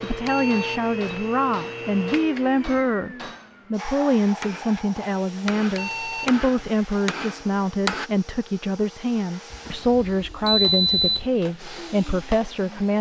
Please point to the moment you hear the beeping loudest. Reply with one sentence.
The volume of the beeping peaks at 11 seconds.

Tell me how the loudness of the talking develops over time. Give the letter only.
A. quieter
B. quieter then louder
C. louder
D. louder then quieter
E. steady
E.